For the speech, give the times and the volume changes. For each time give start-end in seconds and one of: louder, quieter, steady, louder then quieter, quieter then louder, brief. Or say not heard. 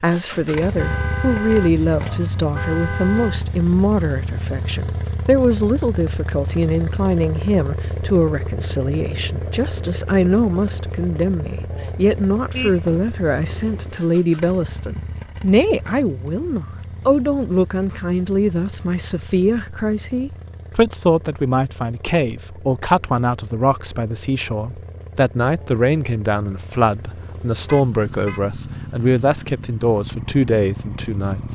0.0-31.5 steady.